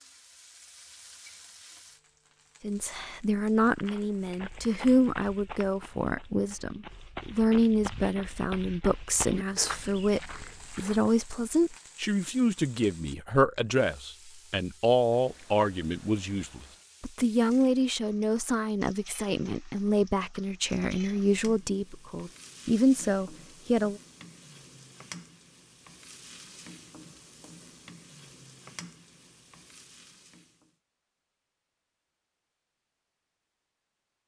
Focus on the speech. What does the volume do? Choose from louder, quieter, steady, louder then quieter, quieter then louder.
steady.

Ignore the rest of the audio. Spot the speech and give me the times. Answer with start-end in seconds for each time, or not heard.
2.6-24.0.